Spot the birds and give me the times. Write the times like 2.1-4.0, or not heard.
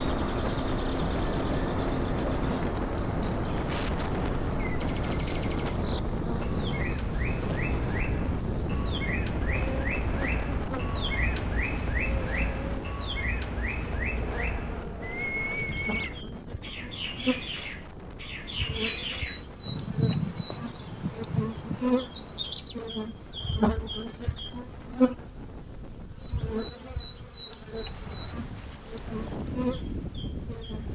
0.0-22.8.